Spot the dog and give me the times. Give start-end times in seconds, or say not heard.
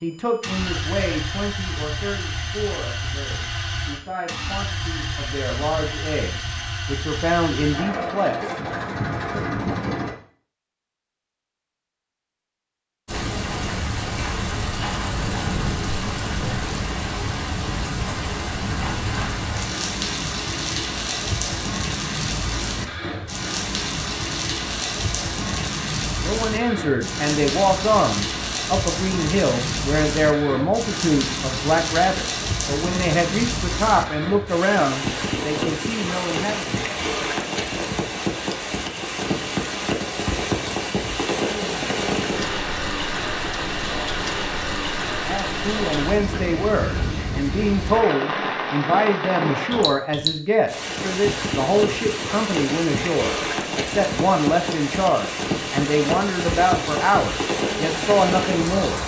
not heard.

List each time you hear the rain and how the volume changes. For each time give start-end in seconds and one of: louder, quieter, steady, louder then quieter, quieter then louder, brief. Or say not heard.
13.1-59.0 steady.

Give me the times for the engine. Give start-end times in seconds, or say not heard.
0.0-10.2.